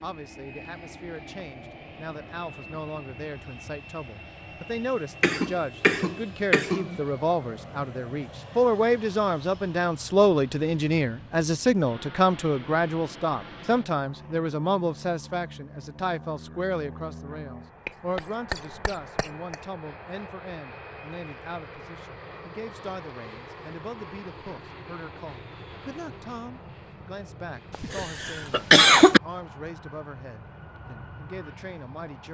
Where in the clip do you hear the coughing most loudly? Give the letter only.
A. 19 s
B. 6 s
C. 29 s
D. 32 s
C.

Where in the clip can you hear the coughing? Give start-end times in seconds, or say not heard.
5.2-7.0, 17.9-19.6, 27.7-29.2.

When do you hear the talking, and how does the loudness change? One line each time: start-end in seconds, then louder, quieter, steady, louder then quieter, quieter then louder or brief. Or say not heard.
0.0-32.3 louder then quieter.